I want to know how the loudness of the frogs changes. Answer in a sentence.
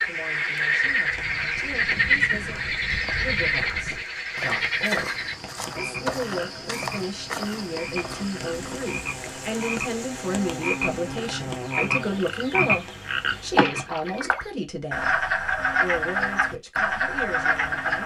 The loudness of the frogs goes down, then up.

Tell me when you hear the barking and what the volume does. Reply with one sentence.
You can't hear the barking here.